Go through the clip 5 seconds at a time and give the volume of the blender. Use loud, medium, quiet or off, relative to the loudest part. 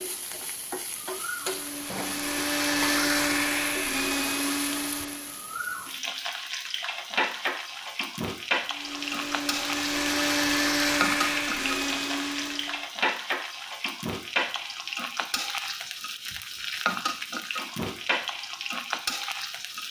loud, medium, loud, off.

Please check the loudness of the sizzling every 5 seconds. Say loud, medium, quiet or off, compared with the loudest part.
medium, loud, loud, loud.